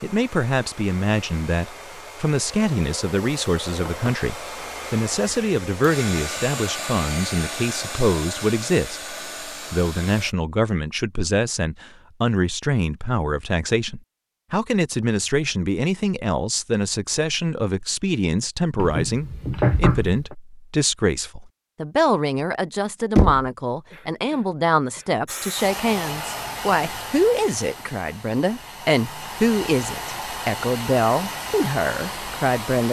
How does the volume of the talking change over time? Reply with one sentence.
The loudness of the talking stays about the same.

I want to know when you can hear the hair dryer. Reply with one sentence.
The hair dryer can be heard from 0.0 to 10.3 s and from 25.2 to 32.8 s.